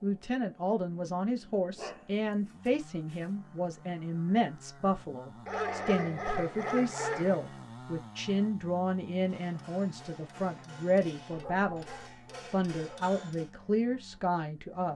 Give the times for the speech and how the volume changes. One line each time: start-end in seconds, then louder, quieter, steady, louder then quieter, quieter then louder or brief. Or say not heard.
0.0-11.8 steady
12.5-14.9 brief.